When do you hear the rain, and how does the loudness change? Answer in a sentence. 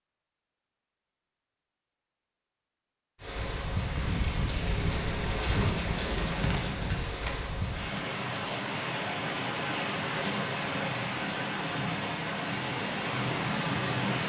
The rain can be heard from 3.2 to 14.2 s, at a steady volume.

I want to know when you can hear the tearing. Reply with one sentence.
The tearing can be heard from 5.4 to 7.3 s.